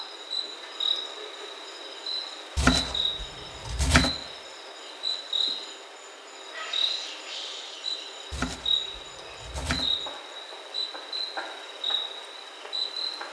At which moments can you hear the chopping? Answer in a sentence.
You can hear the chopping from 2.5 to 4.1 s and from 8.3 to 9.9 s.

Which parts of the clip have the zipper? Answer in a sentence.
The zipper can't be heard in this clip.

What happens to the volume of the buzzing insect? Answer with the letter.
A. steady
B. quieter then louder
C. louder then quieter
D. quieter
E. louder
A.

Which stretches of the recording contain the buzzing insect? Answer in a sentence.
You can hear the buzzing insect from 0.0 to 13.2 s.